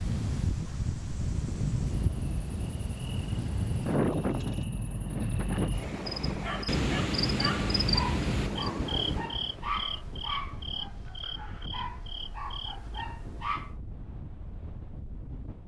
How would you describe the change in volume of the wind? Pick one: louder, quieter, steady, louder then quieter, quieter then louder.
quieter.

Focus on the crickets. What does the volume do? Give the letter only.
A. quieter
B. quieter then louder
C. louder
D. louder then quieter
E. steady
D.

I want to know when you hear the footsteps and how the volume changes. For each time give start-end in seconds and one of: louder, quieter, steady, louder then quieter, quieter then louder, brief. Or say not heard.
not heard.